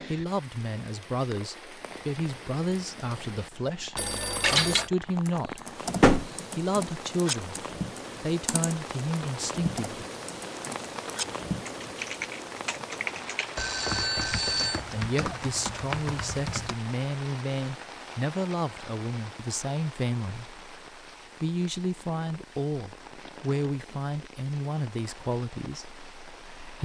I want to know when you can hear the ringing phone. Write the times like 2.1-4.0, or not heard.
4.0-4.9, 13.6-14.8.